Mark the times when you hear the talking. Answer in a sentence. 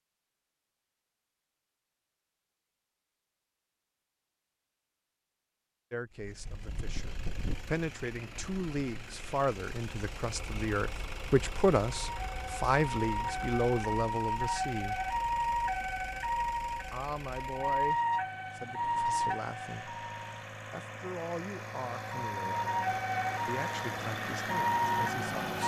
The talking can be heard from 5.9 to 15.0 s and from 16.9 to 25.6 s.